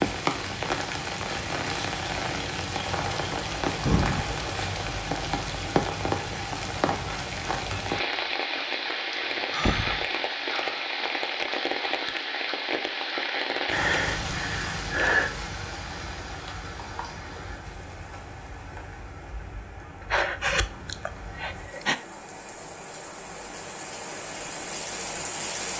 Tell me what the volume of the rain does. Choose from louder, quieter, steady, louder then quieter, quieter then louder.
quieter.